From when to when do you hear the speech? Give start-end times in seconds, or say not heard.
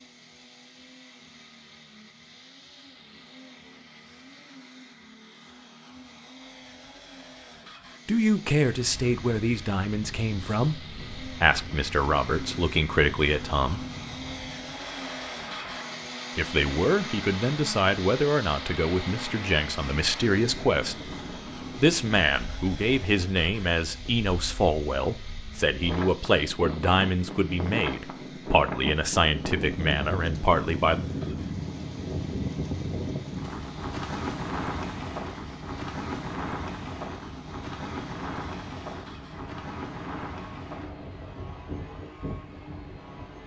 8.1-13.8, 16.4-21.1, 21.8-31.0.